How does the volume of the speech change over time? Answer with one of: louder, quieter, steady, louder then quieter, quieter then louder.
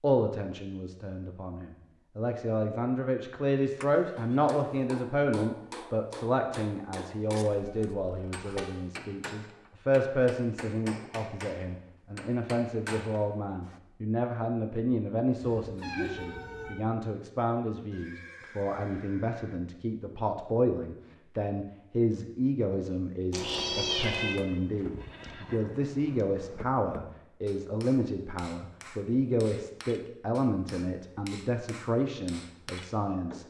steady.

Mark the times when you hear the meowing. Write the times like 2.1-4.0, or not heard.
7.5-8.7, 15.4-16.8, 23.3-24.4.